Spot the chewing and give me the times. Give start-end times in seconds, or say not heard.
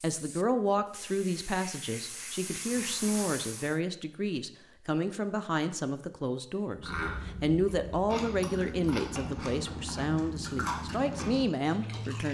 6.8-12.2.